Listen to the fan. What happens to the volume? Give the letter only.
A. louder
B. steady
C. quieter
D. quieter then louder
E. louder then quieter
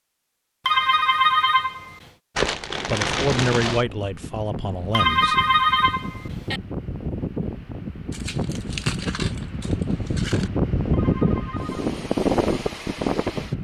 A.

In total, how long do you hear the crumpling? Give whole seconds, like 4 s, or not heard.
4 s.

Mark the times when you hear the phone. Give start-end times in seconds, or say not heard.
0.7-2.0, 4.9-6.6, 10.9-11.8.